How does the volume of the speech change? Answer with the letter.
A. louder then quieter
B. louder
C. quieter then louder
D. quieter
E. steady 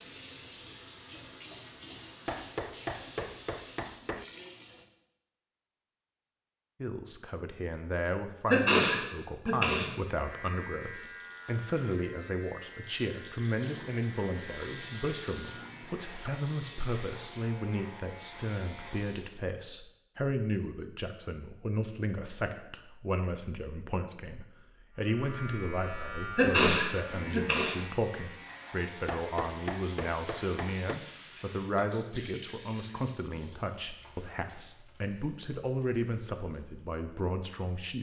E.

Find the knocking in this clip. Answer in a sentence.
The knocking can be heard from 2.2 to 4.2 s and from 29.1 to 31.0 s.